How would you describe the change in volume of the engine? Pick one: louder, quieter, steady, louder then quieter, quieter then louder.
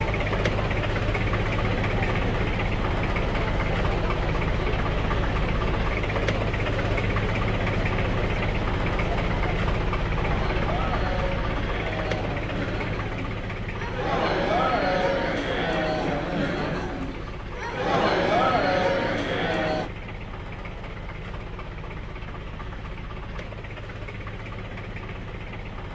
quieter.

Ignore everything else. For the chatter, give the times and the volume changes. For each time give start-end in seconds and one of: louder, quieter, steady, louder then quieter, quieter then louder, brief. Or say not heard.
0.0-19.9 louder.